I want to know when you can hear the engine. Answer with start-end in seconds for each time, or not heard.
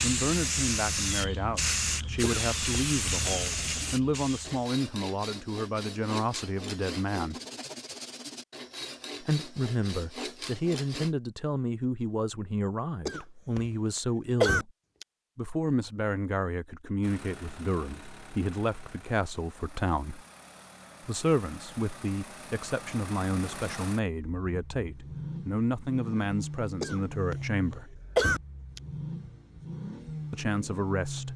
17.0-31.3.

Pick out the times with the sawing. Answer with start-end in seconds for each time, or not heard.
3.2-11.2.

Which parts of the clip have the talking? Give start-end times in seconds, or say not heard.
0.0-7.4, 9.2-14.7, 15.3-20.2, 21.0-28.0, 30.3-31.3.